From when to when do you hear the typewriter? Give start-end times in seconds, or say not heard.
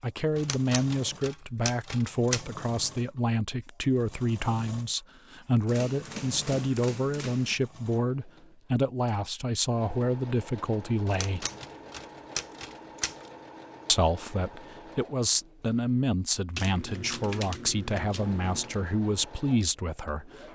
0.3-2.5, 5.7-7.5, 11.1-13.3, 16.6-18.8.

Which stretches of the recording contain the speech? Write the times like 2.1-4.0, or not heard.
0.0-11.4, 13.8-20.4.